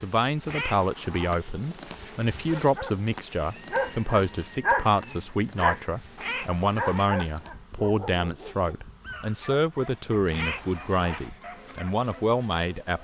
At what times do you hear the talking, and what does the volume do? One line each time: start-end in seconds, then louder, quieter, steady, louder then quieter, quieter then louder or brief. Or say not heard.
0.0-13.0 steady.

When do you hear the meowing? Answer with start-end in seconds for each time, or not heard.
0.5-1.3, 6.2-7.1, 10.3-11.3.